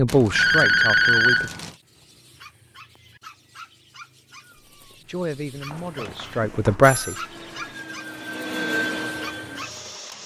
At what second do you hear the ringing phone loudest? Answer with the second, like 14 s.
1 s.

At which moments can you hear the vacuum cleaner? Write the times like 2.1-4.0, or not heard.
7.0-10.2.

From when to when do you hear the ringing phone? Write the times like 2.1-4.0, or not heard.
0.1-1.8, 5.7-7.2.